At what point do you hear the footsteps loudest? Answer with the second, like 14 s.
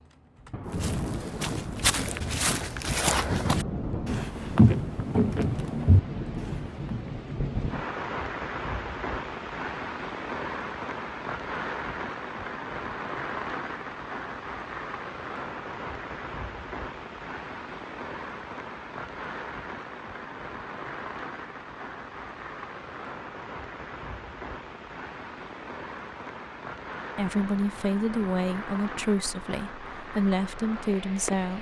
5 s.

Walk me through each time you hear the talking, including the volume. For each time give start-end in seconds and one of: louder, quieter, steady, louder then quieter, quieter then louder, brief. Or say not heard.
27.1-31.5 steady.